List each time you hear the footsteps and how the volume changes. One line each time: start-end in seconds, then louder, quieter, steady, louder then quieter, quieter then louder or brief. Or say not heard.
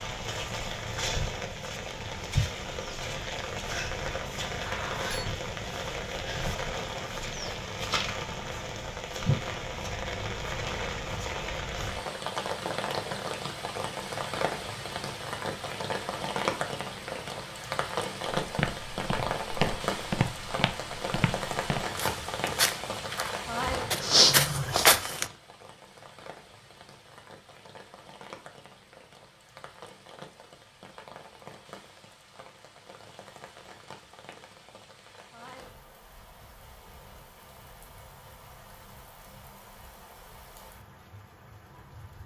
18.4-25.2 louder.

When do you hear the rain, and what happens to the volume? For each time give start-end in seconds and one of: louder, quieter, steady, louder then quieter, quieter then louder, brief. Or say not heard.
0.0-42.2 quieter.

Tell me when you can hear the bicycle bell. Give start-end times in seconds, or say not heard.
4.7-5.4.